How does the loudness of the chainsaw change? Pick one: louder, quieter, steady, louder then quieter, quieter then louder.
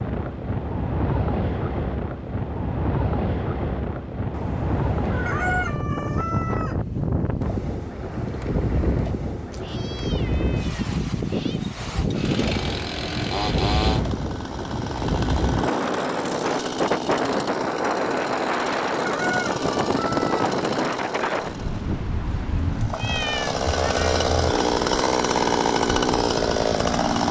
louder.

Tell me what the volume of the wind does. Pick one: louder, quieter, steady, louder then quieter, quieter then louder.
steady.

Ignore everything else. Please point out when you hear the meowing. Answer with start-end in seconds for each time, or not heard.
4.3-5.7, 9.5-11.6, 22.5-24.6.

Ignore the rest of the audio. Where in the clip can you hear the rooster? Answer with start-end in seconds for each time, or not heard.
5.2-6.8, 19.1-20.3.